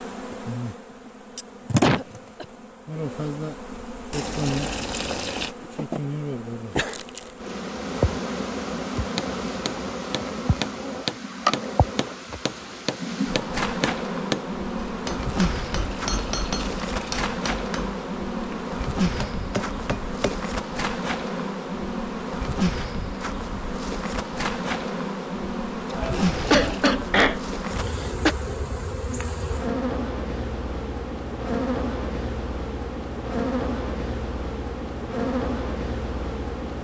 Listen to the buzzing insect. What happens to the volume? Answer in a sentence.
The volume of the buzzing insect stays about the same.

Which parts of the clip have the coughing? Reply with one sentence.
You can hear the coughing from 1.8 to 2.5 s and from 25.9 to 28.4 s.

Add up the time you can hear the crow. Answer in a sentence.
You can't hear the crow here.